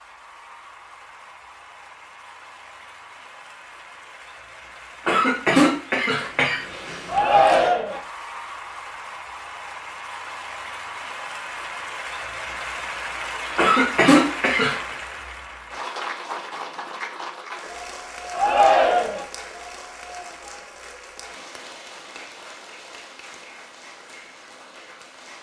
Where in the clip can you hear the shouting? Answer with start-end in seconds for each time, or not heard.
7.0-8.0, 18.3-19.2.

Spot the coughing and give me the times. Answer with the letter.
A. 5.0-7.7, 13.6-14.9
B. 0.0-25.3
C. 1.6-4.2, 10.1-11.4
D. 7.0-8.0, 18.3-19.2
A.